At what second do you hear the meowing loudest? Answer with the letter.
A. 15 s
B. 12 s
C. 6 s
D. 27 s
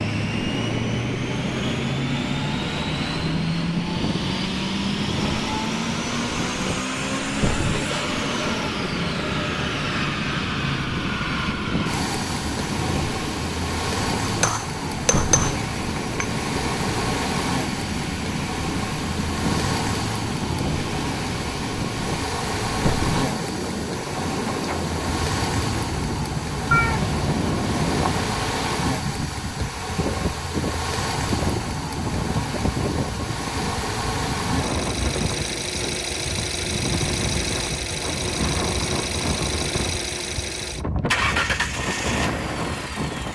D.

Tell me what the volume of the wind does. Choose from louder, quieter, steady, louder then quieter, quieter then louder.
steady.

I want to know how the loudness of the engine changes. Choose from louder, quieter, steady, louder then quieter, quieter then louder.
steady.